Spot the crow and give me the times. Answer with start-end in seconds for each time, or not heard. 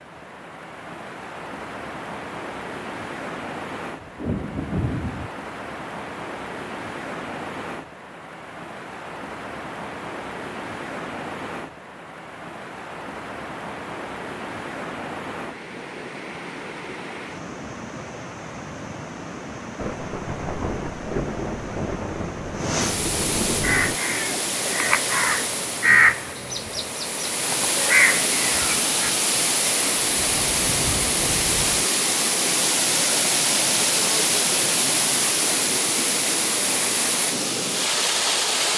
23.6-29.1.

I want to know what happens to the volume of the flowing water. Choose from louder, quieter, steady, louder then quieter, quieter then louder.
louder.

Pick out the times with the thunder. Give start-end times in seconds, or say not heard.
4.0-5.3, 19.8-24.0, 30.0-31.9.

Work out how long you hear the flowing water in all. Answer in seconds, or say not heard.
39 s.